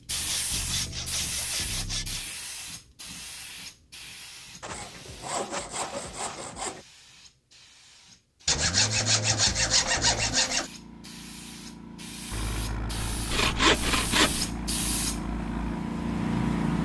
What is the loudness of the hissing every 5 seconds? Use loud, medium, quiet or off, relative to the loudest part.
medium, quiet, medium, loud.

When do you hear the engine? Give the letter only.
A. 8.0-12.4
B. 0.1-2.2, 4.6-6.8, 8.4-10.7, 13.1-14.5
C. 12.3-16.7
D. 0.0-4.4
C.